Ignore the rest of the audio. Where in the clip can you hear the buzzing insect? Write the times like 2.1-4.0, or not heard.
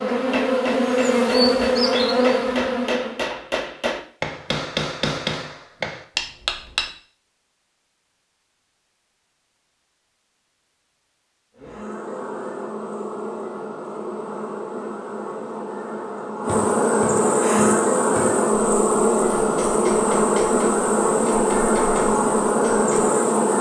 0.0-3.2, 11.6-23.5.